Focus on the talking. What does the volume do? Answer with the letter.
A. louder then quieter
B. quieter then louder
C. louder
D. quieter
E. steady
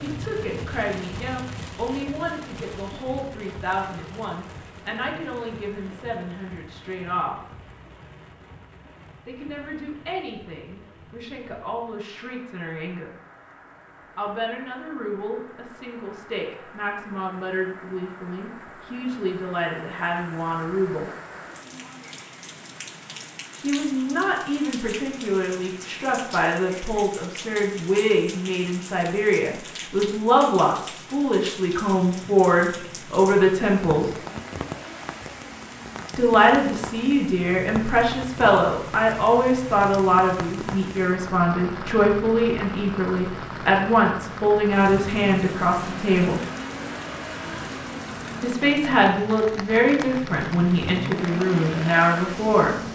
C.